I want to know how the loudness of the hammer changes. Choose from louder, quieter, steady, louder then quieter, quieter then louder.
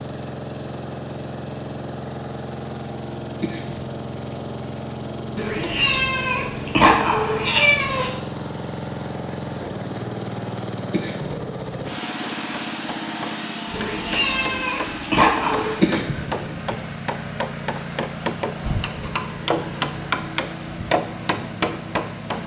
louder.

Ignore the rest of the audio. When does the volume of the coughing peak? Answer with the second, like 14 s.
16 s.